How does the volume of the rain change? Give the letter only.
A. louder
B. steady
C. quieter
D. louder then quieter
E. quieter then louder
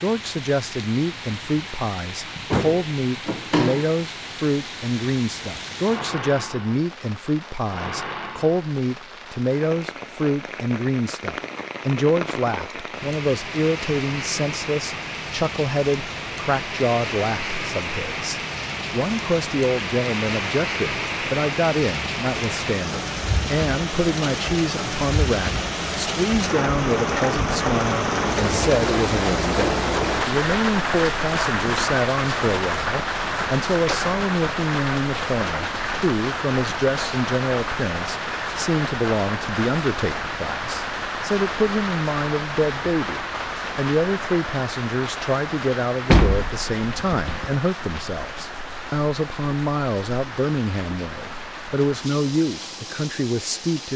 D.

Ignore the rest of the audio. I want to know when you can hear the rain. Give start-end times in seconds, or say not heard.
0.0-53.9.